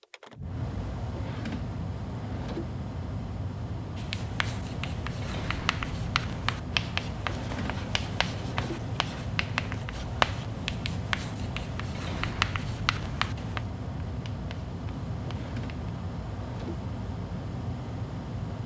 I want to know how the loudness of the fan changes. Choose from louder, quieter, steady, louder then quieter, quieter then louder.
steady.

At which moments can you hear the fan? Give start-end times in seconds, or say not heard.
0.0-18.6.